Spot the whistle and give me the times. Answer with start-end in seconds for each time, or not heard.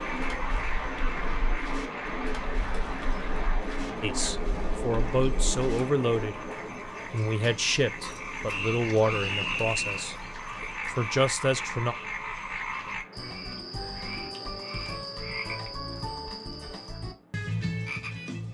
8.4-10.1.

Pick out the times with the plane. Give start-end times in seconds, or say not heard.
0.0-18.4.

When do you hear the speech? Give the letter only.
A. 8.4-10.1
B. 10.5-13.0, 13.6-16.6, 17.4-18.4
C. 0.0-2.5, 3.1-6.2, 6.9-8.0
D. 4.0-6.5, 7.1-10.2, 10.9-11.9
D.